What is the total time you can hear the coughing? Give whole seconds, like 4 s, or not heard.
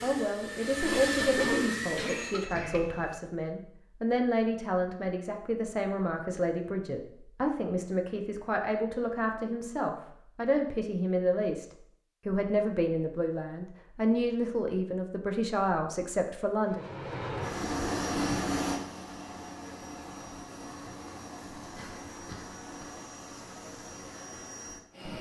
3 s.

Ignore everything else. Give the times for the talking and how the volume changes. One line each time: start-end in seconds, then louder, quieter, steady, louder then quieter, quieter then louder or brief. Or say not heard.
0.0-11.7 steady
12.2-16.8 steady.